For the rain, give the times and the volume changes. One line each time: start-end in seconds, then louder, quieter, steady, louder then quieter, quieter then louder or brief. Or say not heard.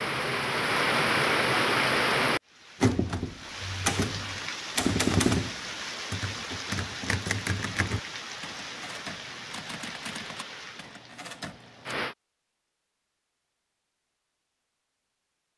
0.0-12.2 quieter.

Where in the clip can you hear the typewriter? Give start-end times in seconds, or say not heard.
2.8-11.9.